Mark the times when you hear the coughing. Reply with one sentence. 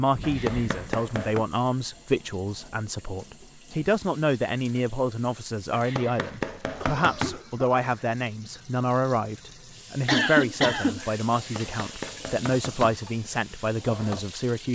The coughing can be heard from 0.1 to 1.0 s, from 6.8 to 8.1 s and from 10.1 to 11.2 s.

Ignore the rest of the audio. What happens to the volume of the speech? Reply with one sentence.
The volume of the speech stays about the same.